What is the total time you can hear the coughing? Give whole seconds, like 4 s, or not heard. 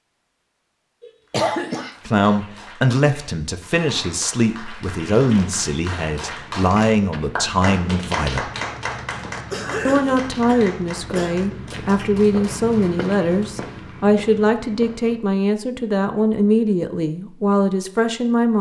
3 s.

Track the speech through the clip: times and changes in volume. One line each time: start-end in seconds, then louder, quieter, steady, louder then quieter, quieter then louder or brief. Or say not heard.
2.0-8.5 steady
9.8-18.5 steady.